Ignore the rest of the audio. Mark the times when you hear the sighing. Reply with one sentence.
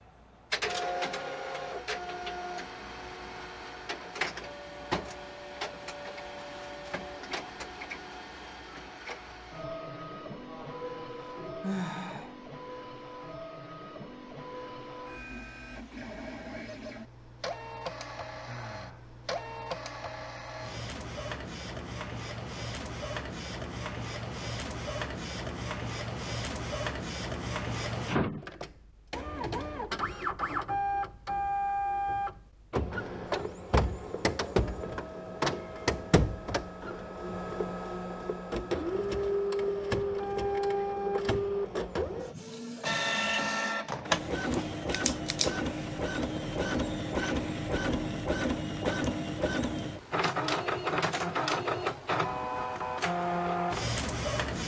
You can hear the sighing from 10.4 to 12.3 s, from 18.4 to 19.1 s and from 52.2 to 52.8 s.